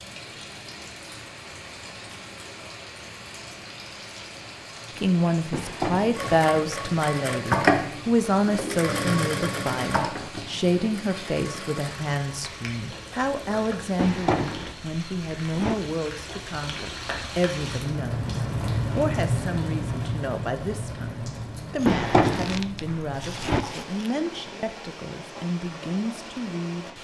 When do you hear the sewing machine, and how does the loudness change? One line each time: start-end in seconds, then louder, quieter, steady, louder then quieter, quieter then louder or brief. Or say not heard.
6.2-13.9 quieter.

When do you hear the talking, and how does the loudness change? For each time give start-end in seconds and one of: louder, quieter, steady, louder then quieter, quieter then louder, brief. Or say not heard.
5.0-26.9 quieter.